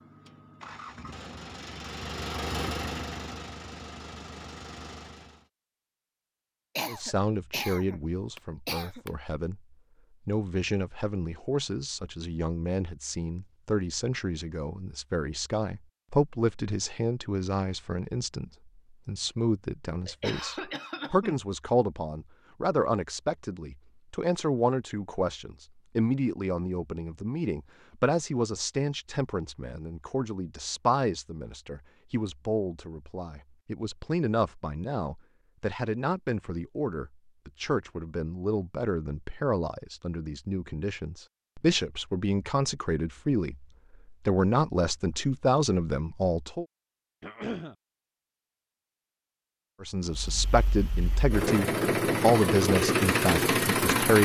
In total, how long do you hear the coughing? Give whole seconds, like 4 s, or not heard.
4 s.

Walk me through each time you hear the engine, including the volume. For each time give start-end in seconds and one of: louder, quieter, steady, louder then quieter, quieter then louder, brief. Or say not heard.
0.0-5.5 louder then quieter
50.0-54.2 louder.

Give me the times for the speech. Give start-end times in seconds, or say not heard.
6.8-46.6, 49.8-54.2.